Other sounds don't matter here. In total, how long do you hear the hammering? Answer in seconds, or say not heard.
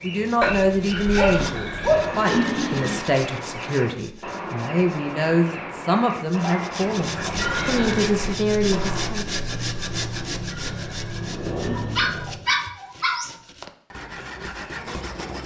not heard.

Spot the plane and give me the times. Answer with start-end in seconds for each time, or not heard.
7.0-12.6.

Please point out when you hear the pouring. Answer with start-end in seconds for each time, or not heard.
1.1-3.0, 7.3-8.1, 10.4-12.2.